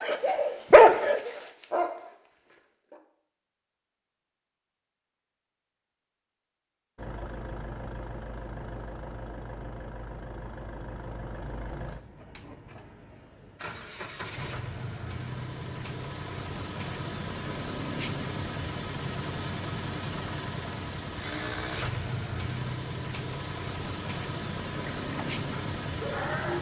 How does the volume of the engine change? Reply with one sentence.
The loudness of the engine goes up.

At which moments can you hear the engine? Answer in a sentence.
The engine can be heard from 7.0 to 26.5 s.